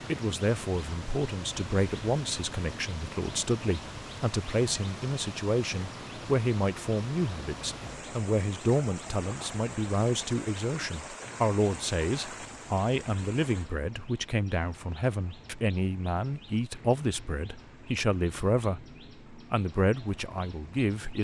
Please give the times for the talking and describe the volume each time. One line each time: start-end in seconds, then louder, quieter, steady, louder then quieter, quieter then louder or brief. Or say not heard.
0.1-21.1 steady.